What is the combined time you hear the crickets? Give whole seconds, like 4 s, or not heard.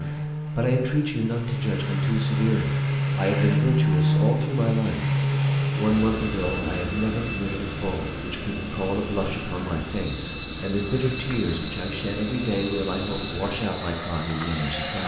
8 s.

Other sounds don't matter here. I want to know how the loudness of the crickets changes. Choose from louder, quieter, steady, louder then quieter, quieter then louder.
steady.